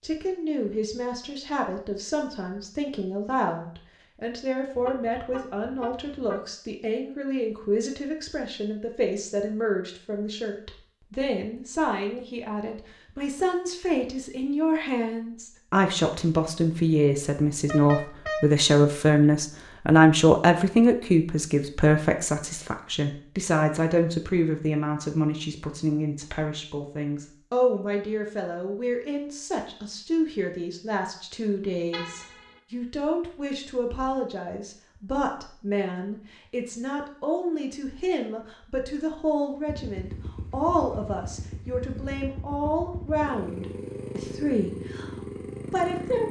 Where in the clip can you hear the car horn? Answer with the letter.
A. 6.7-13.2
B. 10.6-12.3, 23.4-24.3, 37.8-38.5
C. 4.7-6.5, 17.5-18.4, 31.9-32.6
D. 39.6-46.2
C.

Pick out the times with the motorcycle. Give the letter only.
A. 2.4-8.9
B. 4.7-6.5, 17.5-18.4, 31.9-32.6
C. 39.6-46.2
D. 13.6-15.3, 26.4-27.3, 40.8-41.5
C.